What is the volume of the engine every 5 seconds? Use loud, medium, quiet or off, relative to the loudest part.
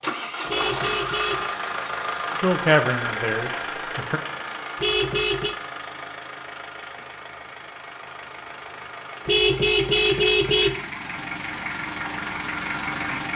loud, medium, loud.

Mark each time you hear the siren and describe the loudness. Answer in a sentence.
You can't hear the siren here.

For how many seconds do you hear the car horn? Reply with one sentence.
You can hear the car horn for 3 seconds altogether.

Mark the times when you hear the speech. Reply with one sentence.
You can hear the speech from 2.4 to 4.2 s.